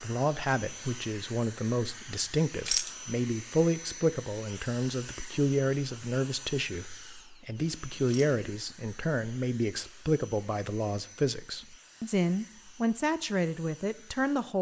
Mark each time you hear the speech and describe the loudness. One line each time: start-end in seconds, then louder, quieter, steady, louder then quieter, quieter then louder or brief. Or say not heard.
0.0-14.5 steady.